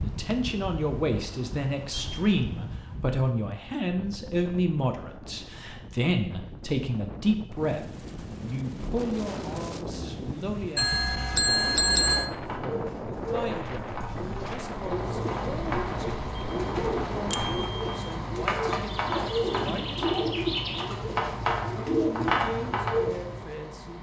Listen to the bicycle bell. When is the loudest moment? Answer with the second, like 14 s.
12 s.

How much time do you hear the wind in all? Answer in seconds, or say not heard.
18 s.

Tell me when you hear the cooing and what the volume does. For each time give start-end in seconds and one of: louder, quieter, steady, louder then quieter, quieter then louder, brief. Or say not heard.
11.9-23.6 louder.